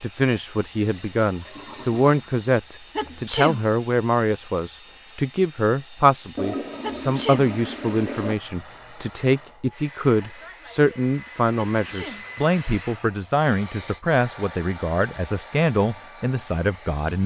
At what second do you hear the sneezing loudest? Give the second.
3 s.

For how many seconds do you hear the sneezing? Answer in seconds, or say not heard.
2 s.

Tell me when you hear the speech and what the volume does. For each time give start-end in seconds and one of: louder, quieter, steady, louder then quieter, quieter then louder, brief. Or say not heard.
0.0-17.2 steady.